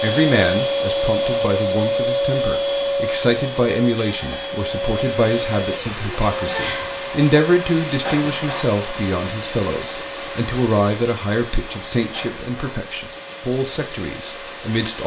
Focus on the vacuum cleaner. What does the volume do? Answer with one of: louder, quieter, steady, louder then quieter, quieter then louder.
quieter.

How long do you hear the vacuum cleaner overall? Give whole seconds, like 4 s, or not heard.
15 s.